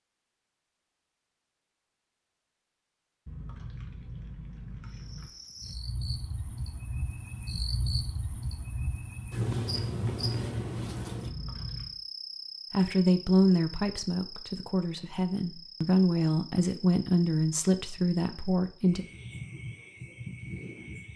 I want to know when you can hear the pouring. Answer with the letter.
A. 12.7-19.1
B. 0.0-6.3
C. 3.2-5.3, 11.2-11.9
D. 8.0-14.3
C.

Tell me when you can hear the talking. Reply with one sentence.
The talking can be heard from 12.7 to 19.1 s.